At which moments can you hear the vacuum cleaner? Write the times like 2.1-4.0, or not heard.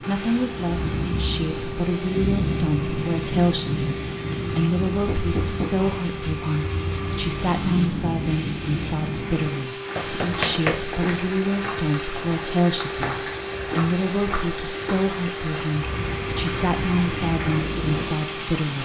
0.0-18.8.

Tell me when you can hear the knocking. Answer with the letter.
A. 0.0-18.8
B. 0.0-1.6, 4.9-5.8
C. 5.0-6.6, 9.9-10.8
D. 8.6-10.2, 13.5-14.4
C.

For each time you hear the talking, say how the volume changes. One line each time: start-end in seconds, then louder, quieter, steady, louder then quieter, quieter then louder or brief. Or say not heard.
0.0-18.8 steady.